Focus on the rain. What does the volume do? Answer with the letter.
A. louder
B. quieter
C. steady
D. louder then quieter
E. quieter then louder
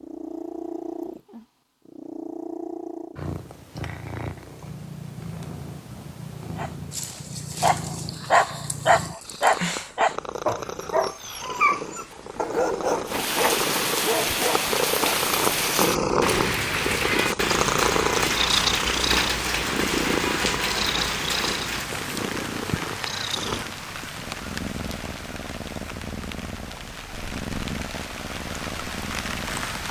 B.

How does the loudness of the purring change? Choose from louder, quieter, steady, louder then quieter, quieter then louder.
louder then quieter.